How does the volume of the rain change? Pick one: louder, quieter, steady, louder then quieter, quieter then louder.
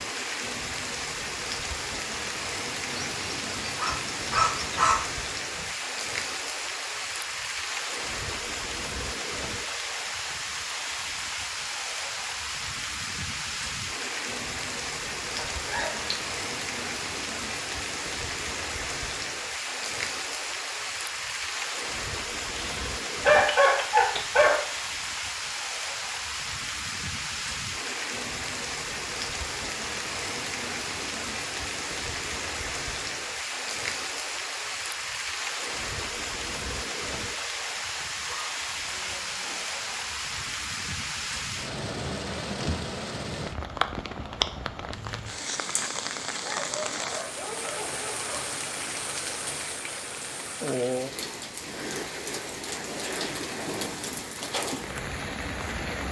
steady.